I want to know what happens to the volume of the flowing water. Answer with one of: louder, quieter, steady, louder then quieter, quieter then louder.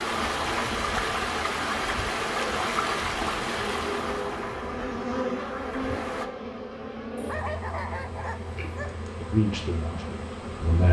quieter.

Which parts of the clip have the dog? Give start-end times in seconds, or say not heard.
7.2-8.9.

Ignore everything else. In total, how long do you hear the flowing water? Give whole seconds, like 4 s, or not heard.
6 s.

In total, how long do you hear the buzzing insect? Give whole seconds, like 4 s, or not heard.
11 s.